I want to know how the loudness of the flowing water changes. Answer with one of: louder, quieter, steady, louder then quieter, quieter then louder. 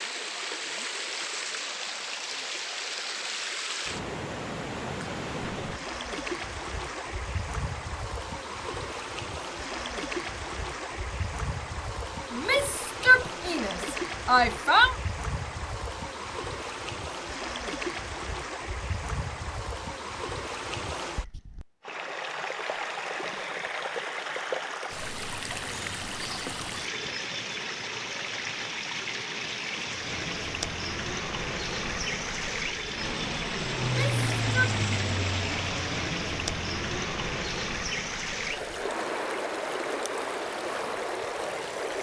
steady.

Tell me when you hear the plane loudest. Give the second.
34 s.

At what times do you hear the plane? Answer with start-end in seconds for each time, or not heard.
29.9-41.9.